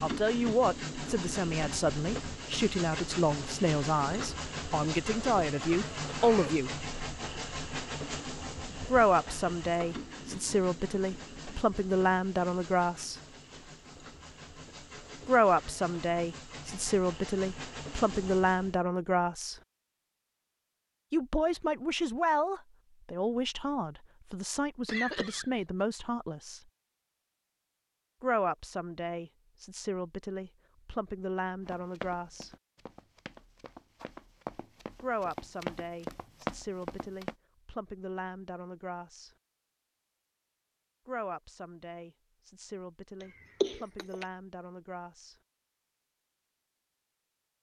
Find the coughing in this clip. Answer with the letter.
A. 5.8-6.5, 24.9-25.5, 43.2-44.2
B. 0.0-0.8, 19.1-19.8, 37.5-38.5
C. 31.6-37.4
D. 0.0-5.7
A.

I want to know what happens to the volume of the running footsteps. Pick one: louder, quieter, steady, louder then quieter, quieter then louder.
louder.